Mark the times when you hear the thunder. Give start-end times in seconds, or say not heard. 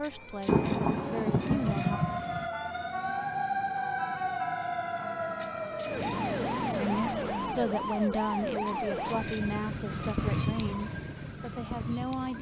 0.5-2.5.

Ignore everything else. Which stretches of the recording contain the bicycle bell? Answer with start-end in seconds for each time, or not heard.
0.0-2.0, 5.4-6.5, 8.7-10.6.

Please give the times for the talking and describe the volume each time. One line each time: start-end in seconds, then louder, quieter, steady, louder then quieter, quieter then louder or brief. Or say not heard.
0.0-2.0 brief
6.8-12.3 quieter.